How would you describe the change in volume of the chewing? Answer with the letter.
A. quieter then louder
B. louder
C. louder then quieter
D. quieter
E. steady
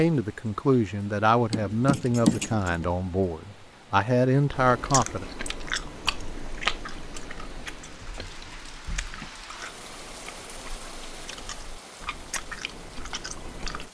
A.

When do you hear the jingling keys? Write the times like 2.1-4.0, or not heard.
1.5-3.0.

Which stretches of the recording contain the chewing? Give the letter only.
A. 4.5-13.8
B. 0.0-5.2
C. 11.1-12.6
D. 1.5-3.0
A.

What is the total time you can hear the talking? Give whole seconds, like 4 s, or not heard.
5 s.